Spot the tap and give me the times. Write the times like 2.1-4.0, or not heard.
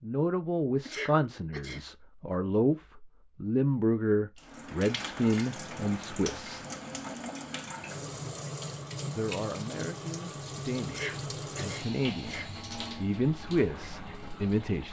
4.3-14.8.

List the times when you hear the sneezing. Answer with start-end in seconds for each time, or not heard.
0.8-1.9, 10.8-12.4.